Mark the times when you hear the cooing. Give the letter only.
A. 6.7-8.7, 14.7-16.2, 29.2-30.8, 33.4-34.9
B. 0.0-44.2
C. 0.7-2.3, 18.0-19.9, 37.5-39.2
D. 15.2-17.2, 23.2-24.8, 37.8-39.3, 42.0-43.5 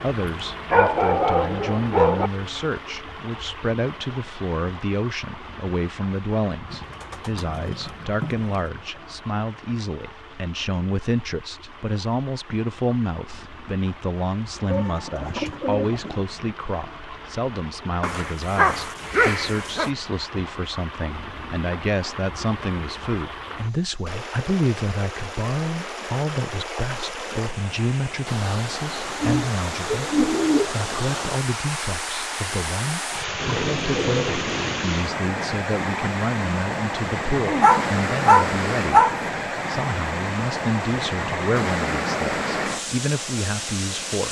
A.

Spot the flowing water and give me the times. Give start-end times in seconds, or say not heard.
0.0-44.2.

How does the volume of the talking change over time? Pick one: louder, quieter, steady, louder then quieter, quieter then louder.
steady.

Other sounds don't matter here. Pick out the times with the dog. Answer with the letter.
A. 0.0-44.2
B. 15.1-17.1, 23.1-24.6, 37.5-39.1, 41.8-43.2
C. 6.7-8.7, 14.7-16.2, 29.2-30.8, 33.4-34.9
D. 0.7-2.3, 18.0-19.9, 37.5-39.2
D.